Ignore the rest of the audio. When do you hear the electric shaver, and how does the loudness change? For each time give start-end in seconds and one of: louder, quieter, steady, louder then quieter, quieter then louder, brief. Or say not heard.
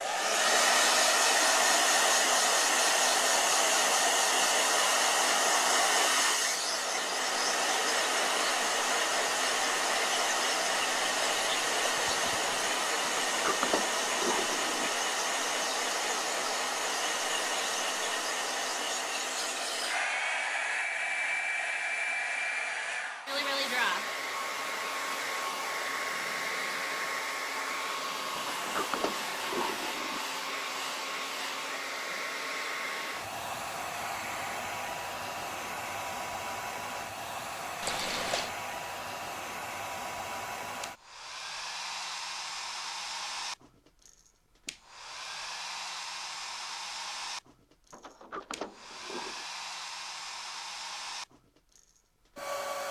not heard.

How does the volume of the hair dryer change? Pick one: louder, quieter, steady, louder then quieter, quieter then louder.
quieter.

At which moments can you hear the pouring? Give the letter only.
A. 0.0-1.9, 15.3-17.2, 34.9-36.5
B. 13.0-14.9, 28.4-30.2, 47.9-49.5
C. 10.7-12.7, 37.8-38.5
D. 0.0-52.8
C.